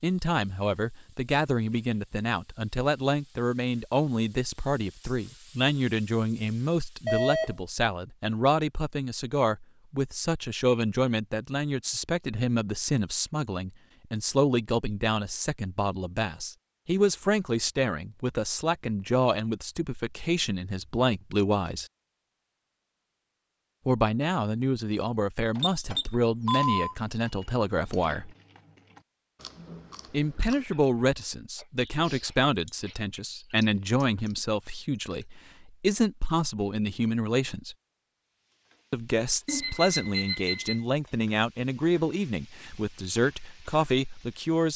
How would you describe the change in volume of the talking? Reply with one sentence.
The volume of the talking stays about the same.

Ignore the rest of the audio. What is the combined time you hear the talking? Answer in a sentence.
The talking can be heard for 40 seconds in total.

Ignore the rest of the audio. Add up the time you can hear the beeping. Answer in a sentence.
You can hear the beeping for 4 seconds altogether.